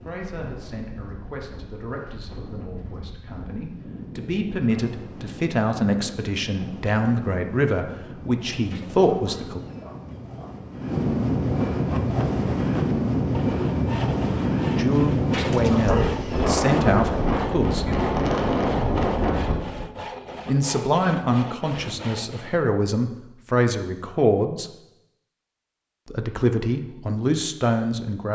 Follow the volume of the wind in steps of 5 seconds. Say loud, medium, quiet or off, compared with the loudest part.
quiet, quiet, loud, loud, off, off.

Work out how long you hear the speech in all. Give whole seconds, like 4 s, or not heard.
19 s.